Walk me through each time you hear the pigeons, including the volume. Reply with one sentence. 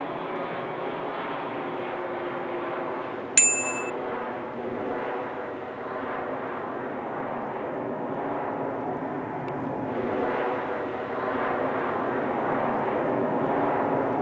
You can't hear the pigeons here.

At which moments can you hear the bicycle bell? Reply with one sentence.
The bicycle bell can be heard from 3.4 to 3.9 s.